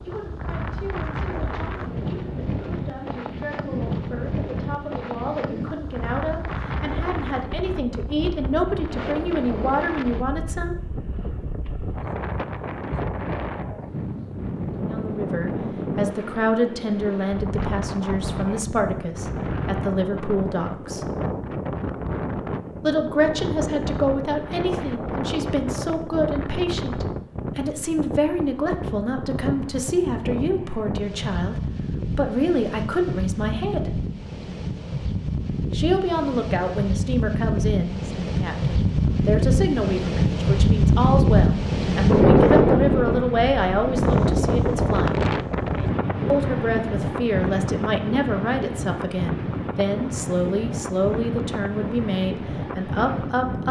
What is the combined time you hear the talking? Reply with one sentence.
You can hear the talking for 45 seconds altogether.